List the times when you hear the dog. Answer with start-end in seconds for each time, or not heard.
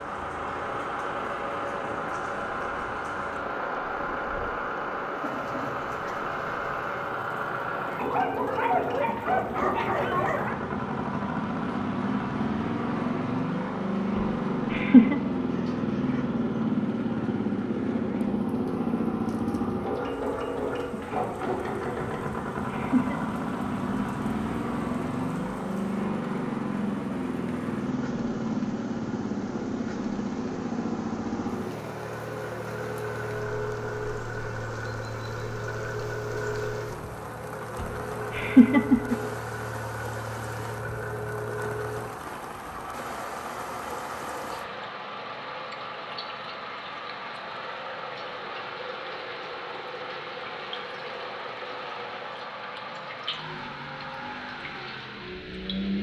8.0-10.6.